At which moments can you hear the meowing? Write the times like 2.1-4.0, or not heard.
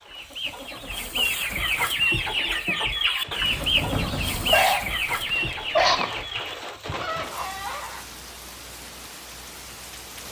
3.4-4.7.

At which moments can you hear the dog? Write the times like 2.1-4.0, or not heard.
4.0-6.0.